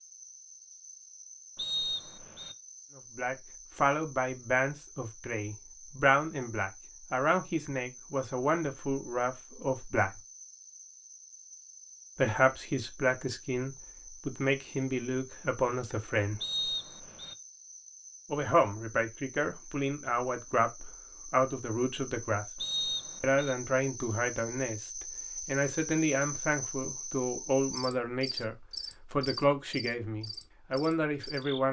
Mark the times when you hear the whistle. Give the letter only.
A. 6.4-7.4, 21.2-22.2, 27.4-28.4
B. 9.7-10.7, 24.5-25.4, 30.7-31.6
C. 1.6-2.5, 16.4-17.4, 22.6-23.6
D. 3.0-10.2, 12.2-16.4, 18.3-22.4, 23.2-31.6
C.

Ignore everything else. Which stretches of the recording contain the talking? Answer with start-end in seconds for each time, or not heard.
3.0-10.2, 12.2-16.4, 18.3-22.4, 23.2-31.6.